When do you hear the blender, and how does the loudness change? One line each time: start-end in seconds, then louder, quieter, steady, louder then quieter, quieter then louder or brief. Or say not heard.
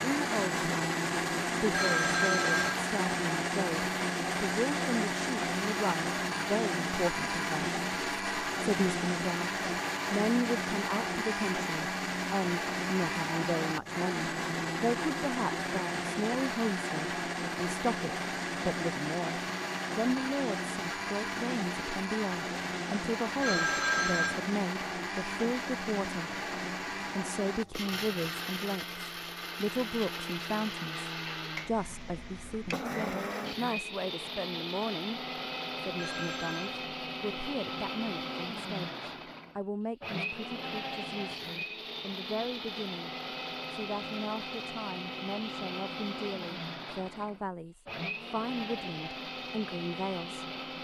0.0-50.7 quieter.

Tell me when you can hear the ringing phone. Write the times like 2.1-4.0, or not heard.
1.7-2.8, 23.4-24.4, 36.0-36.8.